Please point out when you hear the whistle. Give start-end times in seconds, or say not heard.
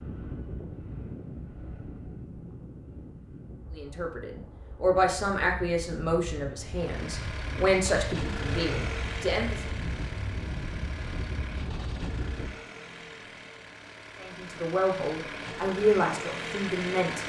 not heard.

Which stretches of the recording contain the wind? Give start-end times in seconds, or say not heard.
0.0-12.6.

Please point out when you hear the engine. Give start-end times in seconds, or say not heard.
6.7-17.2.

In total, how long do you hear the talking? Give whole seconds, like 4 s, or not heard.
9 s.